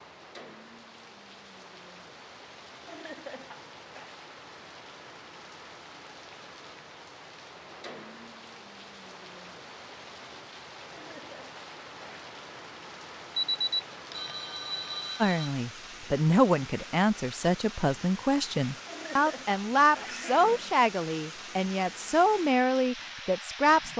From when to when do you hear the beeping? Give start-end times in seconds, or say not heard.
13.3-15.5.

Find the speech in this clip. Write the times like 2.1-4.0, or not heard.
15.2-23.9.